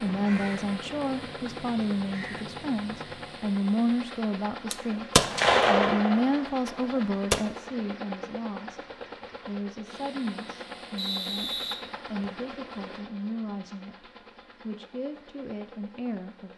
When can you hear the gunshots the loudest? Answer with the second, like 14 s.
6 s.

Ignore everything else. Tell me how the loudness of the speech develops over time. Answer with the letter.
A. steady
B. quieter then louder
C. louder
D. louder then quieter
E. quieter
E.